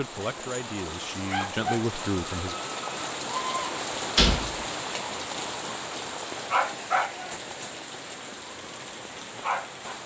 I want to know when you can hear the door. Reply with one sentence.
You can hear the door from 4.0 to 4.5 s.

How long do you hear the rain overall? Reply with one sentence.
You can hear the rain for 10 seconds altogether.